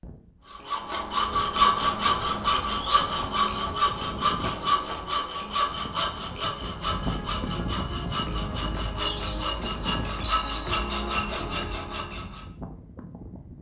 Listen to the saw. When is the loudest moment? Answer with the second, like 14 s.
2 s.